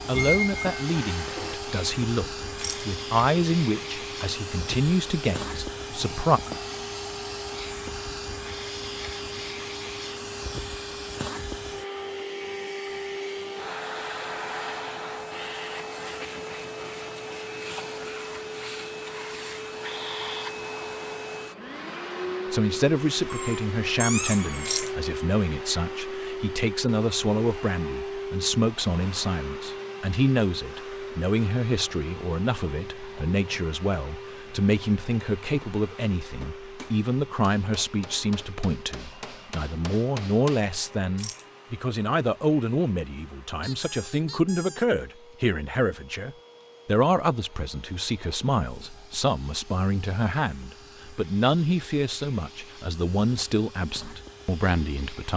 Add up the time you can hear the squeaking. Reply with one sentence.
The squeaking can be heard for 4 seconds in total.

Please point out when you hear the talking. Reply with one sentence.
The talking can be heard from 0.1 to 6.4 s and from 22.5 to 55.3 s.